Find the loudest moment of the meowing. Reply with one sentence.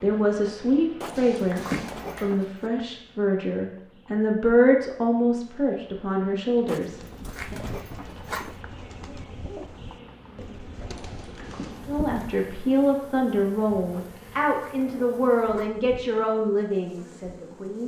The volume of the meowing peaks at 2 seconds.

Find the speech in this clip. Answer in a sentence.
You can hear the speech from 0.0 to 7.5 s and from 11.8 to 17.8 s.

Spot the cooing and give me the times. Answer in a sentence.
You can hear the cooing from 6.8 to 12.4 s.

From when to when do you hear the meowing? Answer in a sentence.
You can hear the meowing from 1.0 to 2.2 s and from 10.9 to 12.0 s.